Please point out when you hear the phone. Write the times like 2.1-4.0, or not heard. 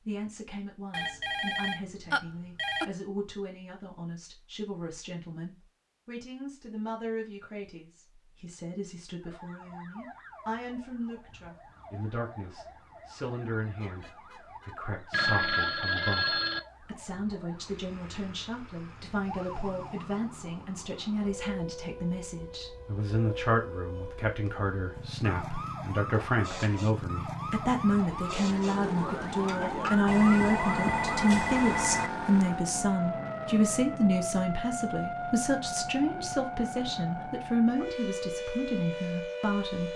0.9-2.9, 15.1-16.6, 30.1-32.1.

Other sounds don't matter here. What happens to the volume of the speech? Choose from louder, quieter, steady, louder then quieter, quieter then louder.
louder.